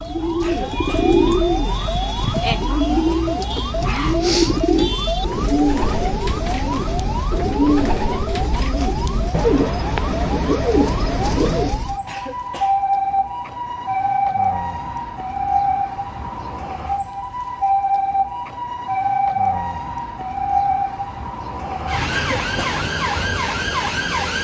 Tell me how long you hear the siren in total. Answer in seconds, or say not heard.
24 s.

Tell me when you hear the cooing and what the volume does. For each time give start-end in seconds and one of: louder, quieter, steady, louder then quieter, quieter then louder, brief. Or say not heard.
0.0-11.8 steady.